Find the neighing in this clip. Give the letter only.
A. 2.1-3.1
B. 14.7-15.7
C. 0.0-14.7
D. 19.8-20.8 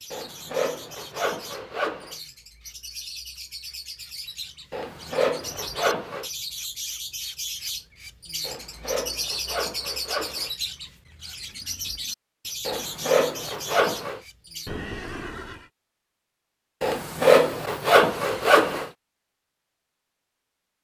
B.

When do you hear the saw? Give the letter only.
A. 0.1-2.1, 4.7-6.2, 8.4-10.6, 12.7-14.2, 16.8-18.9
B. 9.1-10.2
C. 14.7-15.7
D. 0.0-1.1
A.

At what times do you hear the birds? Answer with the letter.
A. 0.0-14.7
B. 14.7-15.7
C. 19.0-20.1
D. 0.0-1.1
A.